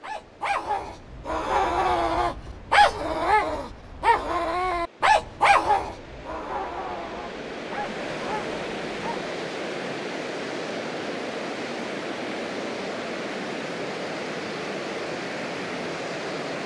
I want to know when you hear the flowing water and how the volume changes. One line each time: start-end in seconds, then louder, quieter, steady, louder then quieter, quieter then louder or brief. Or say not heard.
0.0-16.6 louder.